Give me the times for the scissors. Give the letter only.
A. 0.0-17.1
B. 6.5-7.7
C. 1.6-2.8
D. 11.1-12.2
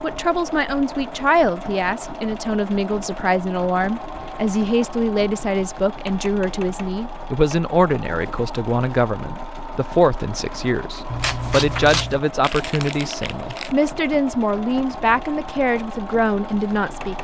D.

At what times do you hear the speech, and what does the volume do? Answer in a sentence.
The speech can be heard from 0.0 to 17.1 s, at a steady volume.